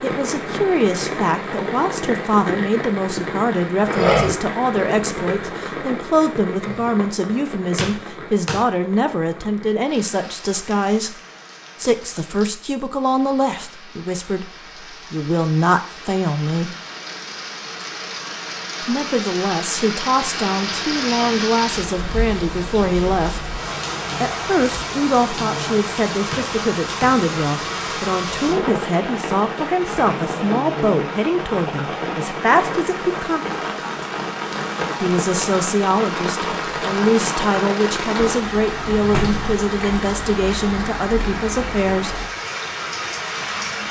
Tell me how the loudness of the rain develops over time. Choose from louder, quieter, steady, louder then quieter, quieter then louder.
quieter then louder.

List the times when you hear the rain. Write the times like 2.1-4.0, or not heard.
0.0-43.8.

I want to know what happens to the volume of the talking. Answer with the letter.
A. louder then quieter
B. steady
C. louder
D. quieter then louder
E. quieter
B.